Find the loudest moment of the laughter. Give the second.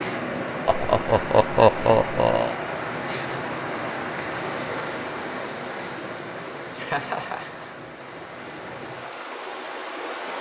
2 s.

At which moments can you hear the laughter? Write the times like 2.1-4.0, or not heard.
0.7-2.5, 6.8-7.7.